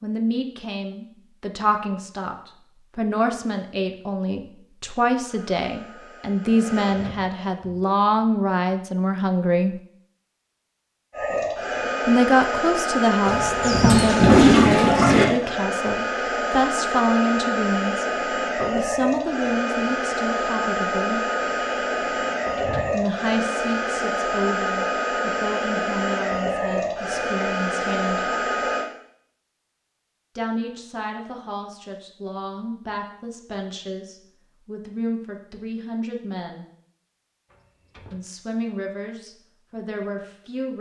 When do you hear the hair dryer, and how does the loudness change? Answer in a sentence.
The hair dryer can be heard briefly from 5.2 to 7.6 s; and from 11.1 to 28.9 s, at a steady volume.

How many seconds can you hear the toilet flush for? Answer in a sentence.
The toilet flush can be heard for 2 seconds in total.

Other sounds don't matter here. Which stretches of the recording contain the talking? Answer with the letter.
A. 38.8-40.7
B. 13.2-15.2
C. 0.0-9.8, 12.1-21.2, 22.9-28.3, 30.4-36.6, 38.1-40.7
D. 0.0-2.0
C.